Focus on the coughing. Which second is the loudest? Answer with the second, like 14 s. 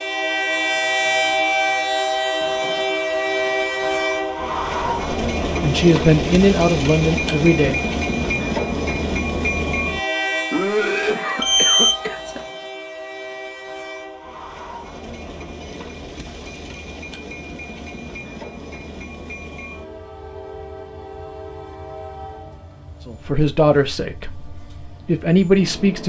11 s.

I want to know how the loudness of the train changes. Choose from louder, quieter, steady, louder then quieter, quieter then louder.
quieter.